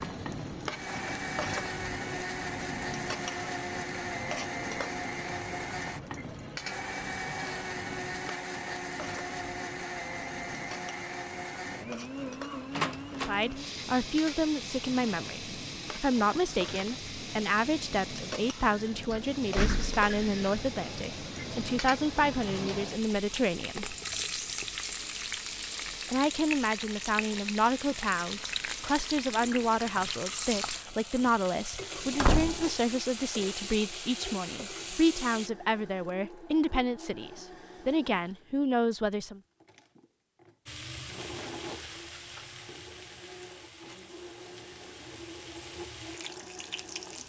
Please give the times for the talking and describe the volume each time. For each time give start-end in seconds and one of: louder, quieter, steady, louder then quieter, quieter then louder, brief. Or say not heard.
13.2-23.9 steady
26.1-39.4 steady.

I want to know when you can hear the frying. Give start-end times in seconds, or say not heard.
0.0-35.5, 40.6-47.2.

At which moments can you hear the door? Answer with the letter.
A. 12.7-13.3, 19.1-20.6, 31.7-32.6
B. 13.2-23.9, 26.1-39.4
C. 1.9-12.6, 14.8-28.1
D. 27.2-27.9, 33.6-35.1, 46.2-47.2
A.